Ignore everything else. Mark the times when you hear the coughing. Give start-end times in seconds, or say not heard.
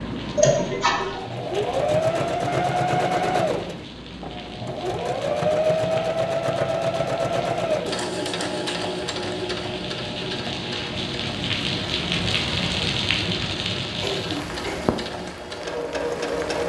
0.3-1.2, 14.0-14.9.